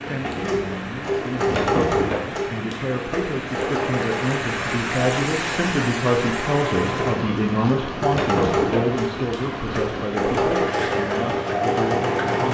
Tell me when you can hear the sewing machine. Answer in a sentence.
The sewing machine can be heard from 0.0 to 12.4 s.